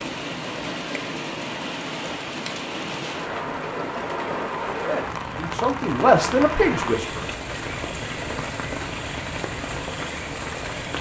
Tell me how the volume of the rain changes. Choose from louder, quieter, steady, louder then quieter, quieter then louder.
steady.